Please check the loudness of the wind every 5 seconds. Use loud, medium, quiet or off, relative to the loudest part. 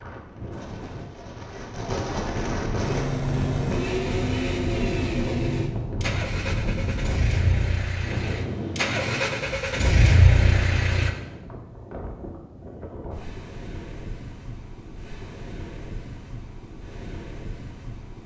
loud, loud, medium, medium.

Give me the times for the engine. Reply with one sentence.
You can hear the engine from 2.8 to 11.1 s.